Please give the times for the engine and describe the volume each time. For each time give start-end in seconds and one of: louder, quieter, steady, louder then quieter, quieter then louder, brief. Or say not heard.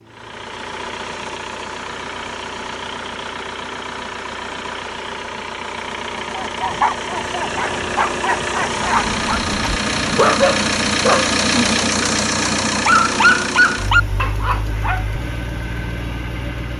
0.0-16.7 louder then quieter.